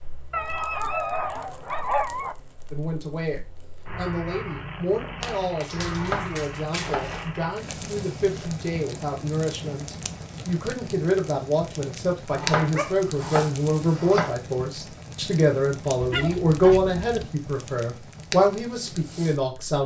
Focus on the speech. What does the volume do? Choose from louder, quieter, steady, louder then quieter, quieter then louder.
louder.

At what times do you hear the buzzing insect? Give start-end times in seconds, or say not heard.
not heard.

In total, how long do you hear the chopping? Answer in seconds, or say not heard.
3 s.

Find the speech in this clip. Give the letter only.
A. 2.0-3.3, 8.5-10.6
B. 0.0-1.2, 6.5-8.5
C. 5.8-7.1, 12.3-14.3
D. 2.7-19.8
D.